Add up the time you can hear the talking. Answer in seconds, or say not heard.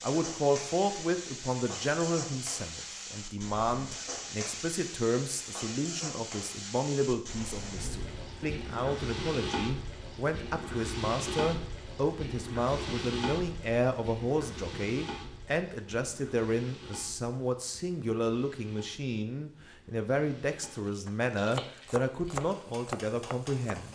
24 s.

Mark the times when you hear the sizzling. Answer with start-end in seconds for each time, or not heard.
0.0-23.9.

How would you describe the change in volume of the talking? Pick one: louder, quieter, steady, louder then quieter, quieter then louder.
steady.